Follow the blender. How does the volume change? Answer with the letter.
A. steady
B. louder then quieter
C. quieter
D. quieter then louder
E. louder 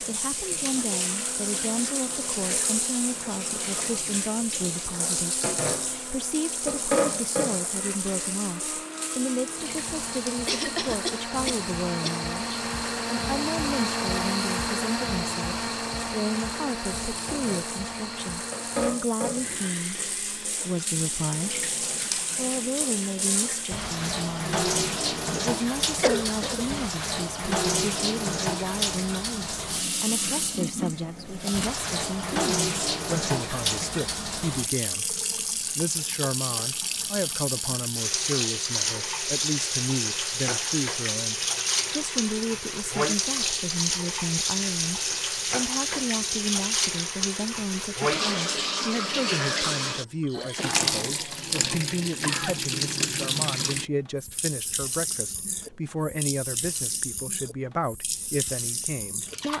B.